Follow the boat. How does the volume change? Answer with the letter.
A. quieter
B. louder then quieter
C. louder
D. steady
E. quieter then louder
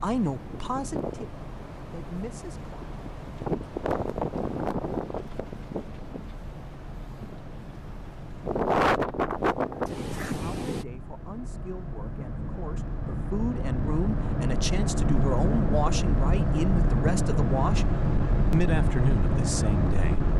C.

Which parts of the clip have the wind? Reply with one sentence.
The wind can be heard from 0.0 to 10.8 s.